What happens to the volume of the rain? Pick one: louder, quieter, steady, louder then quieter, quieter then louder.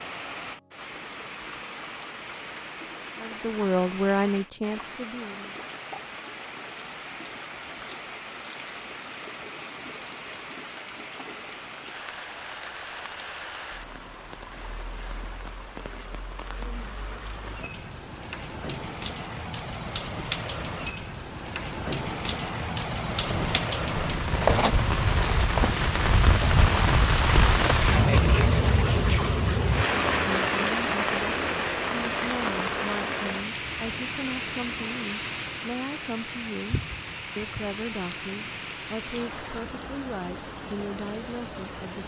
louder then quieter.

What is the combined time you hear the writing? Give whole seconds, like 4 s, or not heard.
5 s.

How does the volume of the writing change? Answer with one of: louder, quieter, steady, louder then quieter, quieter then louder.
quieter.